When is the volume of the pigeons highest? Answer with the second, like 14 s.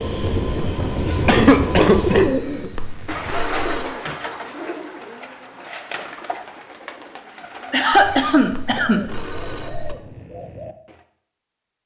2 s.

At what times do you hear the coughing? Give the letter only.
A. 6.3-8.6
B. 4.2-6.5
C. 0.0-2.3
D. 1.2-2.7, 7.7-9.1
D.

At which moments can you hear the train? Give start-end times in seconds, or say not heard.
0.0-2.3.